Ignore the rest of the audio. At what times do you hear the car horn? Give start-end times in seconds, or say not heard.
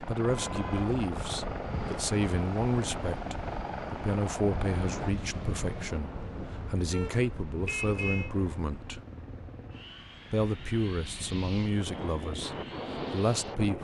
0.4-0.9, 6.9-8.3.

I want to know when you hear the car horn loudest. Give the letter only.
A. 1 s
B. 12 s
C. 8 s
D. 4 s
C.